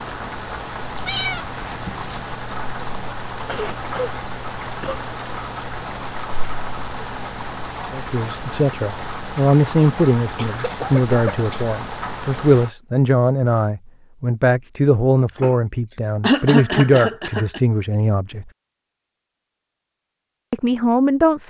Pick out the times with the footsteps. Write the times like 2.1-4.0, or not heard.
not heard.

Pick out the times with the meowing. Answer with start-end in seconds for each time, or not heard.
0.9-2.2.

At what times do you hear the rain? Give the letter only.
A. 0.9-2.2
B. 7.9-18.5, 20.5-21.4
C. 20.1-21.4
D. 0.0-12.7
D.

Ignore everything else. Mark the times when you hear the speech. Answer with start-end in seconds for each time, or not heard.
7.9-18.5, 20.5-21.4.